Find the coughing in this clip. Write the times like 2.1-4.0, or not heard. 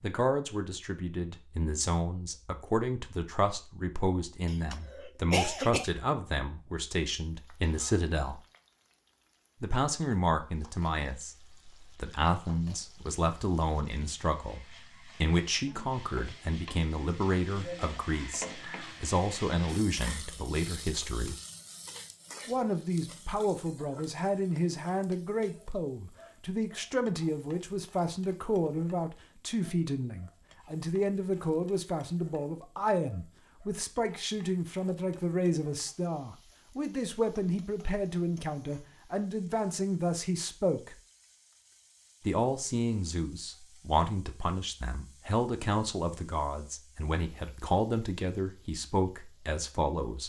4.5-5.9.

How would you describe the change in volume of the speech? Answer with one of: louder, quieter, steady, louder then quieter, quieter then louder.
steady.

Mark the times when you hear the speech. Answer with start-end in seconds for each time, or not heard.
0.0-8.4, 9.6-21.4, 22.4-41.0, 42.2-50.2.